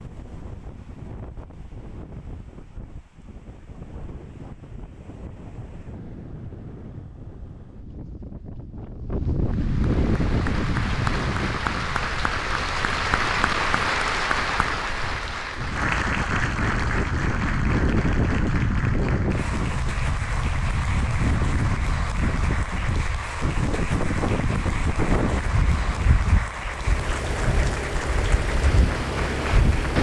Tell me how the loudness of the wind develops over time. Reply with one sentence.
The volume of the wind goes up.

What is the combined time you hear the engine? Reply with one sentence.
You can hear the engine for 3 seconds altogether.